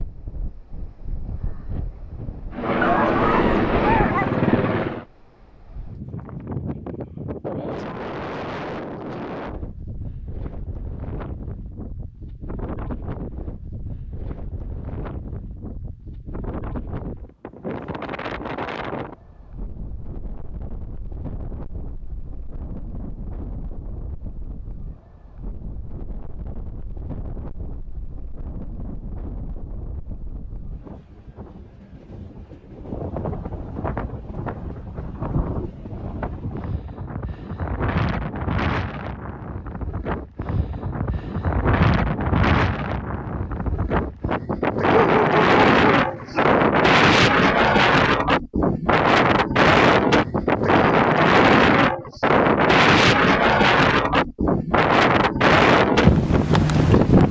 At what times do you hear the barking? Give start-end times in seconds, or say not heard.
2.8-4.4, 44.9-46.4.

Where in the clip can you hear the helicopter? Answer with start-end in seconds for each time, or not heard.
2.5-5.0.